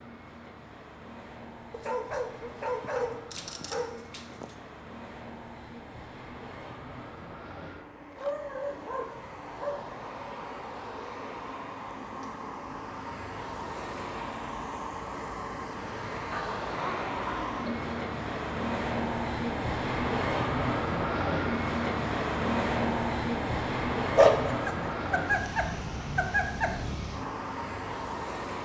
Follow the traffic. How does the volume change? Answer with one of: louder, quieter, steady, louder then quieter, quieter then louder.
louder.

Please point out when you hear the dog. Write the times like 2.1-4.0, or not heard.
1.7-4.6, 8.2-9.9, 16.3-18.0, 24.1-26.7.